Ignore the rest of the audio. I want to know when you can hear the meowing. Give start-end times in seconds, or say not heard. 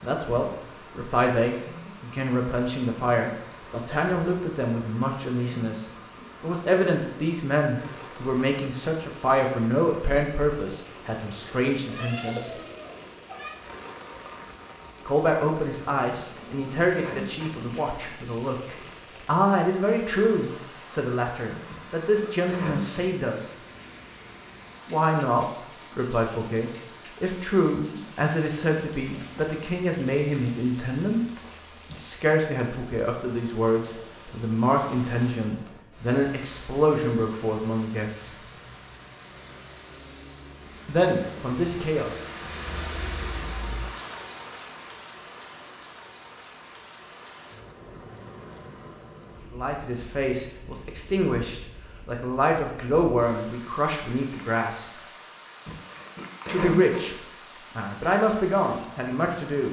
11.4-13.6.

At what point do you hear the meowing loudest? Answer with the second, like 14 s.
12 s.